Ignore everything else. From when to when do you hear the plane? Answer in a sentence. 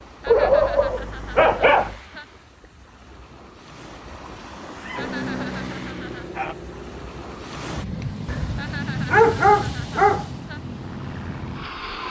You can hear the plane from 5.0 to 12.0 s.